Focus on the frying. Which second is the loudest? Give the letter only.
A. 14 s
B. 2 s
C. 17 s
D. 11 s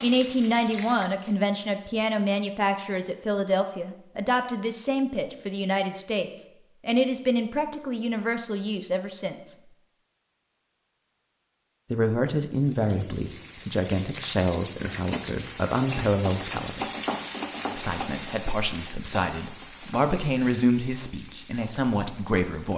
C.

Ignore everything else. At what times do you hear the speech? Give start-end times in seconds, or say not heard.
0.0-9.6, 11.9-16.9, 17.8-22.7.